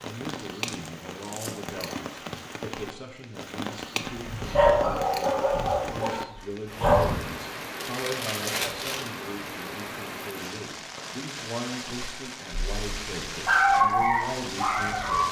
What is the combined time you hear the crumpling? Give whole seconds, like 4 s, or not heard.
3 s.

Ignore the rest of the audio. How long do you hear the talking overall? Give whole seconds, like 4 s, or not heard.
15 s.